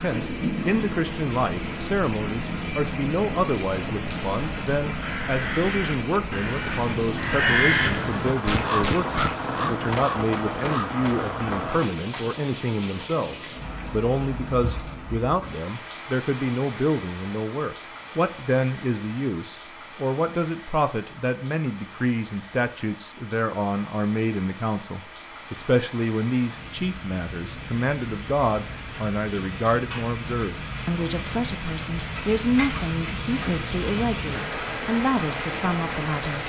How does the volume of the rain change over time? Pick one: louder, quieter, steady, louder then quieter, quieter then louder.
quieter then louder.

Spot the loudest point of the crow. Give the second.
8 s.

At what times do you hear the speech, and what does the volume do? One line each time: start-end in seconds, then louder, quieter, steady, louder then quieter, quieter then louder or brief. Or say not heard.
0.0-36.4 steady.